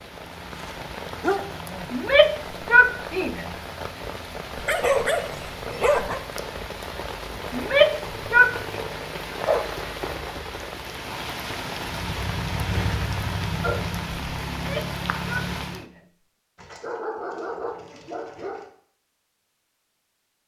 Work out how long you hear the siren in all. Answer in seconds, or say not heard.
not heard.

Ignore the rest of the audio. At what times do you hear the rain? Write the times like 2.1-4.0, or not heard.
0.0-15.8.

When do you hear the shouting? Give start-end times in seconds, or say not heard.
1.9-3.5, 7.5-8.8, 14.6-16.0.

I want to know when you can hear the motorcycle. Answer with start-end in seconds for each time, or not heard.
11.8-14.1.